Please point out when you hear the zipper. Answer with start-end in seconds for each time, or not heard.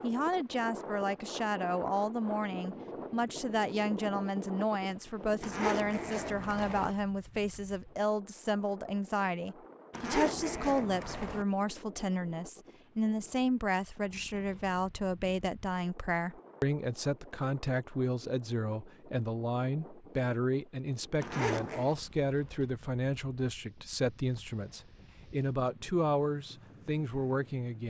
5.4-7.0, 9.9-11.4, 21.2-21.9.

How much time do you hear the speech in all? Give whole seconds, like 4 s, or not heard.
28 s.